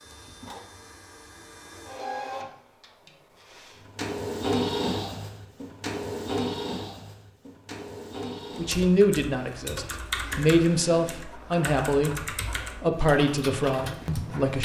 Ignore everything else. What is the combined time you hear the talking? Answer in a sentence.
You can hear the talking for 6 seconds altogether.